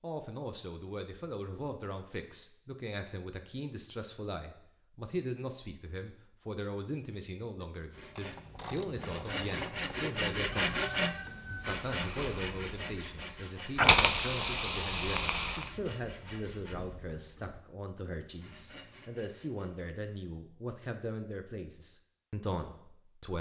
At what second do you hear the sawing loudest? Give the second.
11 s.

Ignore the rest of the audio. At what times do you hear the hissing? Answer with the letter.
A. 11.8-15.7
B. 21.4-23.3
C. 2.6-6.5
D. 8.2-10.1
A.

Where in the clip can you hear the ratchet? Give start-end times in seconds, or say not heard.
8.2-10.1.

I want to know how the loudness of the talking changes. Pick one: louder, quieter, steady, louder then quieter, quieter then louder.
steady.